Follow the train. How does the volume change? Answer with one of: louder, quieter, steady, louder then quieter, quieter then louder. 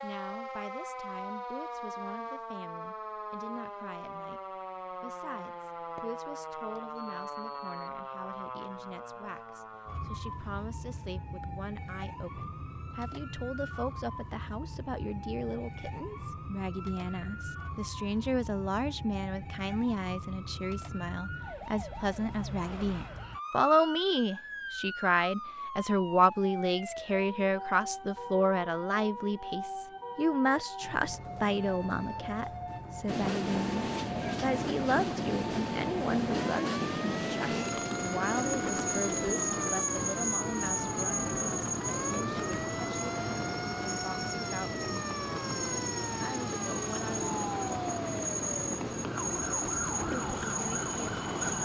steady.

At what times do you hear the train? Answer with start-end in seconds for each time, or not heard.
33.0-51.6.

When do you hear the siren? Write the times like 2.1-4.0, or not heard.
0.0-51.6.